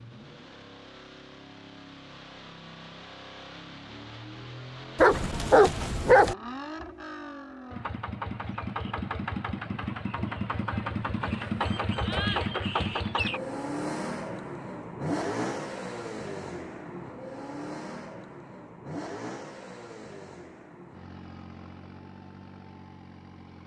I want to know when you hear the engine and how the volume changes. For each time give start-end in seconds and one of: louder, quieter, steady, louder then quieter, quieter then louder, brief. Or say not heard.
0.0-23.6 louder then quieter.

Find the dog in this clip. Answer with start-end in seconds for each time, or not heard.
5.0-6.3.